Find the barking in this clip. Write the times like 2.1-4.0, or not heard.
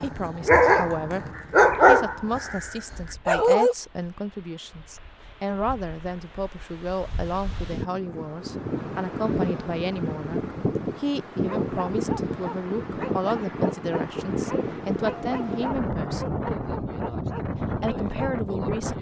0.0-3.8, 11.4-18.4.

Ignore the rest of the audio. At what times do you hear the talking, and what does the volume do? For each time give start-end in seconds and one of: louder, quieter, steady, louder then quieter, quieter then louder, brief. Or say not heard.
0.0-16.4 steady
17.5-18.9 brief.